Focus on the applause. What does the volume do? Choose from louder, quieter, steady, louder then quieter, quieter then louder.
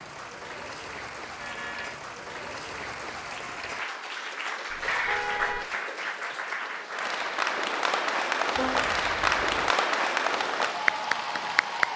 louder.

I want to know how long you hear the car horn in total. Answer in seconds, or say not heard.
3 s.